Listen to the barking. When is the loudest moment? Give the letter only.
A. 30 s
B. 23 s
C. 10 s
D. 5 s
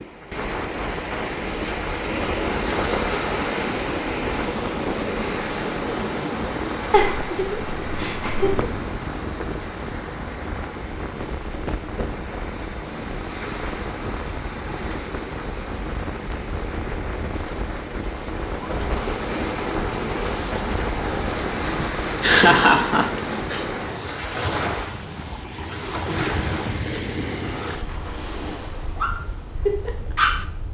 A.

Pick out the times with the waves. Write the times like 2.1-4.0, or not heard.
0.0-30.7.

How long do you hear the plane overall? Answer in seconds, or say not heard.
not heard.